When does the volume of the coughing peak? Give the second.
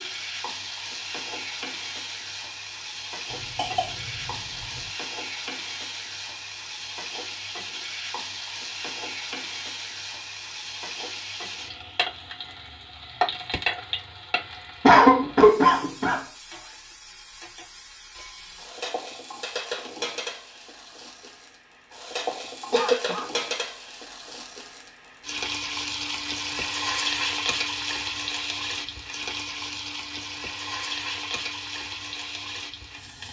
15 s.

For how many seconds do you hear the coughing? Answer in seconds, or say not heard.
4 s.